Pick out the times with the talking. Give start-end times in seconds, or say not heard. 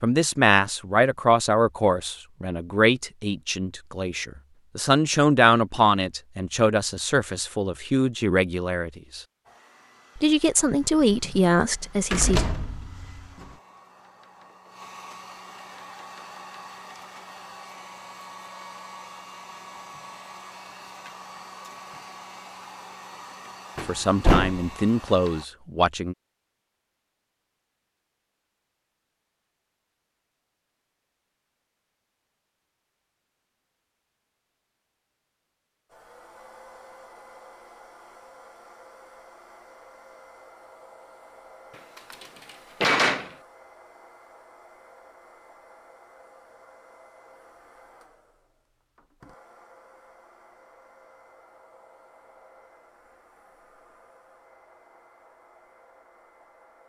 0.0-9.2, 10.2-12.4, 23.9-26.1.